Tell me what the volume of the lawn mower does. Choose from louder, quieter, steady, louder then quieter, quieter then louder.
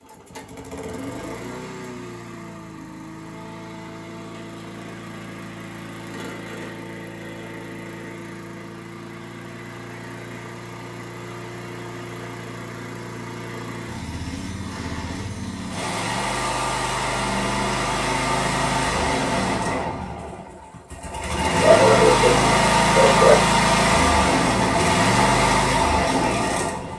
louder.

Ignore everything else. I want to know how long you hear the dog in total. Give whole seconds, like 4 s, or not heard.
2 s.